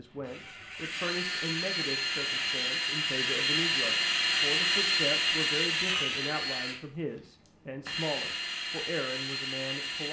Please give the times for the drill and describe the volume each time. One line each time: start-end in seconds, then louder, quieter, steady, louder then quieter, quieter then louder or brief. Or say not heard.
0.1-10.0 louder then quieter.